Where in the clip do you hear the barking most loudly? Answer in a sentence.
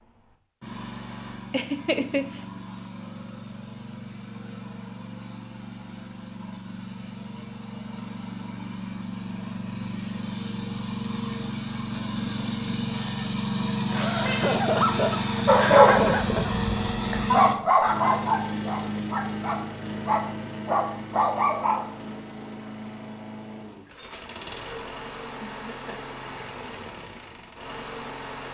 The loudest moment of the barking is at 16 seconds.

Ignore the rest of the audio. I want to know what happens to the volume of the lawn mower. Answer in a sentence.
The volume of the lawn mower goes up, then down.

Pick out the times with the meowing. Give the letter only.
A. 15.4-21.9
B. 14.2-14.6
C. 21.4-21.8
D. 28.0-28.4
B.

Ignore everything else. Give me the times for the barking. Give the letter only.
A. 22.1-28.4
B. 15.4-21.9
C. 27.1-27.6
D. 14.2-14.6
B.